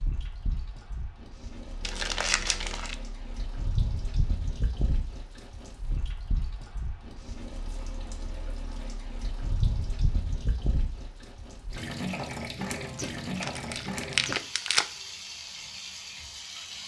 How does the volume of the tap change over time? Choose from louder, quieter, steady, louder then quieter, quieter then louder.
louder.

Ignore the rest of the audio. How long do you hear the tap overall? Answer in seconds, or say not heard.
17 s.